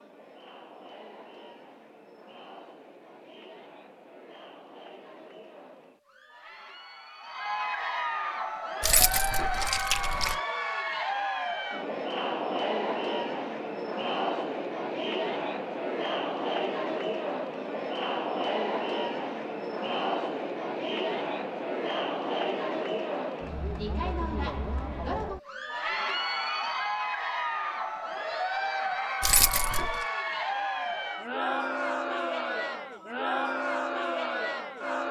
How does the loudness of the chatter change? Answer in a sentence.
The volume of the chatter goes up.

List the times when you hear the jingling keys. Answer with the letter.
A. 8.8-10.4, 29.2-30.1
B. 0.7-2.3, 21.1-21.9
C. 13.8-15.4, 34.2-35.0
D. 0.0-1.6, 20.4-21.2
A.